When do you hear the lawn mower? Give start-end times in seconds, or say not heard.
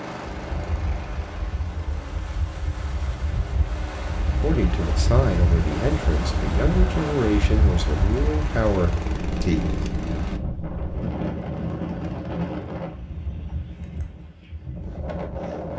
0.0-10.4.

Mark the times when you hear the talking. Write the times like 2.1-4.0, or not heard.
4.4-9.7.